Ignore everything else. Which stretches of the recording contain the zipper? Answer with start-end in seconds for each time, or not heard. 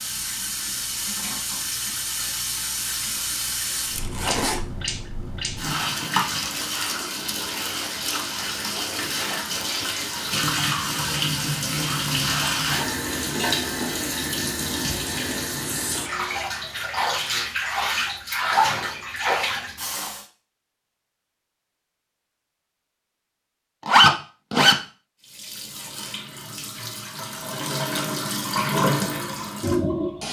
4.0-4.6, 23.9-24.8.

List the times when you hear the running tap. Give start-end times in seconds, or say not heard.
0.0-20.2, 25.2-30.2.